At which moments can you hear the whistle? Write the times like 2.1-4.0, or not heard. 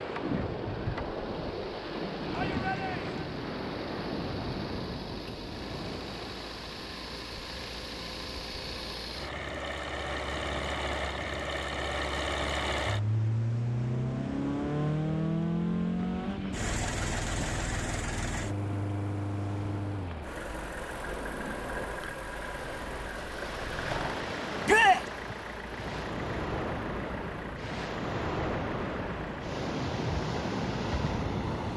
not heard.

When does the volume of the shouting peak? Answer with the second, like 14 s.
25 s.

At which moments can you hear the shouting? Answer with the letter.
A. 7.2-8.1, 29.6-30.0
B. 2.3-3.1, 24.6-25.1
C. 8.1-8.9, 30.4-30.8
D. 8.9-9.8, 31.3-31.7
B.